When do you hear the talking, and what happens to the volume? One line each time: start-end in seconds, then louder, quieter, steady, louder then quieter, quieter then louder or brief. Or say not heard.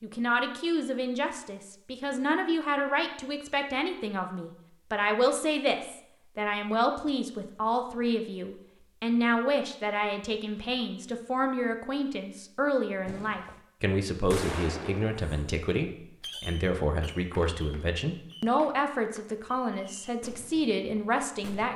0.0-21.7 steady.